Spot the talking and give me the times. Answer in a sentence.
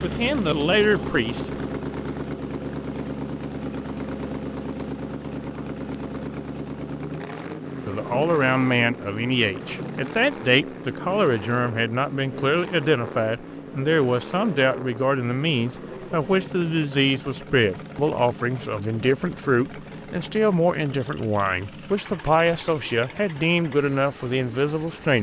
You can hear the talking from 0.0 to 1.4 s and from 7.8 to 25.1 s.